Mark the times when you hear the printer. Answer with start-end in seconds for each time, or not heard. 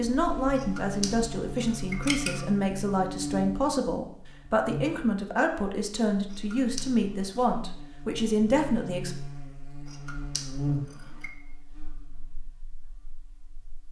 not heard.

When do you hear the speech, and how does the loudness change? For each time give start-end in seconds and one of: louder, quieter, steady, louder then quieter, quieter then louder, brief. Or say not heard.
0.0-9.2 steady.